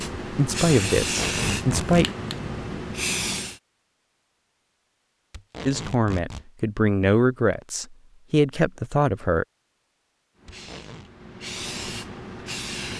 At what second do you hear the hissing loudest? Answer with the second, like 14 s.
1 s.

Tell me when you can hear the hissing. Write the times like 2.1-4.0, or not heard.
0.0-3.6, 10.3-12.9.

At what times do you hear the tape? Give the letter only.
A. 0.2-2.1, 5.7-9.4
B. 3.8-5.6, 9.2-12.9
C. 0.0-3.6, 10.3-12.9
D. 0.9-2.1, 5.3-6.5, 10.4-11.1
D.